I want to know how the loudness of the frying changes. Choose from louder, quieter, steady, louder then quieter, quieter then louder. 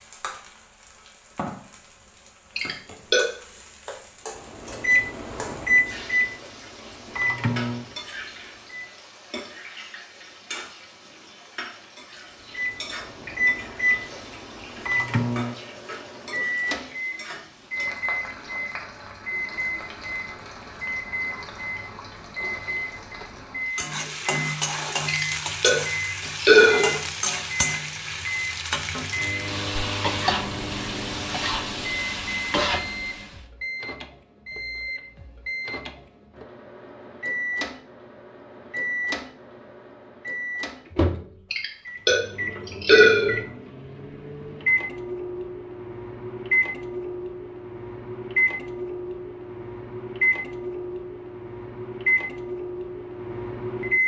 louder.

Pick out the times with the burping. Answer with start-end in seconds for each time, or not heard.
2.5-3.3, 25.1-26.9, 41.5-43.4.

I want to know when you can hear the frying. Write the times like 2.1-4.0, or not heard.
0.0-33.4.